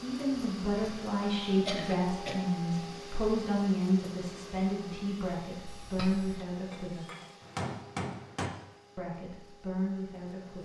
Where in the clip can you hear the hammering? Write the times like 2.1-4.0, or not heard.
6.7-8.5.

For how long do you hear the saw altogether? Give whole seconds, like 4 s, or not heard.
not heard.